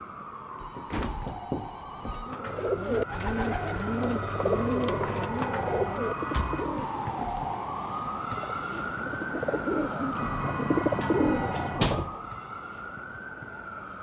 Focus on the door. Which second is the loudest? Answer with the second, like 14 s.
12 s.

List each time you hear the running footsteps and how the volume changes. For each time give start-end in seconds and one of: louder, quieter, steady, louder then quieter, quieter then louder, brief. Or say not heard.
not heard.